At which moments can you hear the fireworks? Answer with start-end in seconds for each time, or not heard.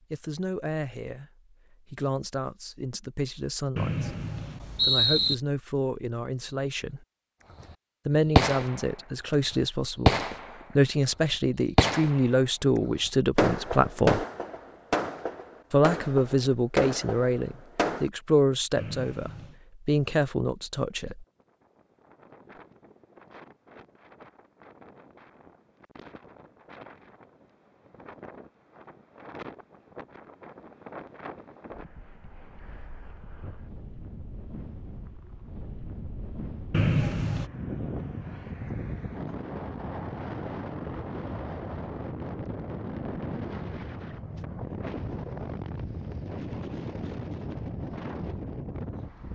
7.6-18.1.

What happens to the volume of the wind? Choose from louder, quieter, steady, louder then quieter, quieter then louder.
louder.